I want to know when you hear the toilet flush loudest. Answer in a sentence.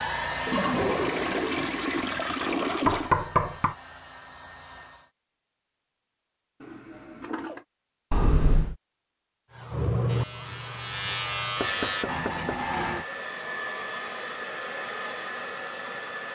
The volume of the toilet flush peaks at 1 second.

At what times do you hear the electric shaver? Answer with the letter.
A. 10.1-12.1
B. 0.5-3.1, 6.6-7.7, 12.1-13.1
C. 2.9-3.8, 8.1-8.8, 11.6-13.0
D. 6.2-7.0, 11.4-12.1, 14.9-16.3
A.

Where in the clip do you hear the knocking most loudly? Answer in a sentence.
The loudest moment of the knocking is at 3 seconds.